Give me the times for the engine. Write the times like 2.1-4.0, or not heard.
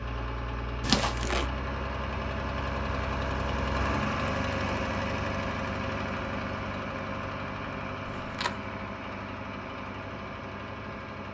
0.0-11.2.